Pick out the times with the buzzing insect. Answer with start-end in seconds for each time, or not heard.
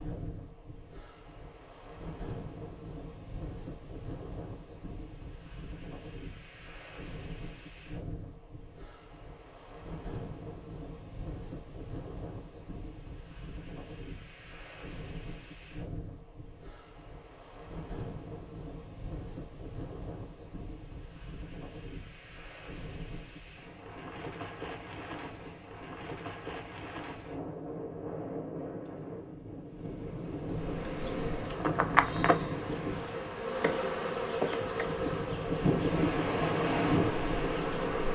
30.5-38.0.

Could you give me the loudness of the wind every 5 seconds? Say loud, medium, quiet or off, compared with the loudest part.
quiet, quiet, quiet, quiet, quiet, medium, medium, loud.